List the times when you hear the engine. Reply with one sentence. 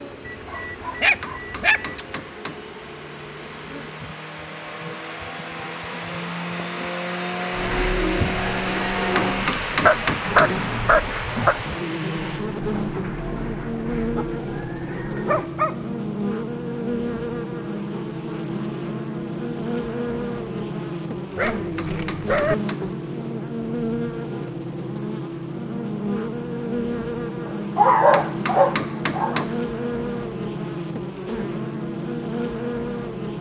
You can hear the engine from 0.0 to 12.4 s.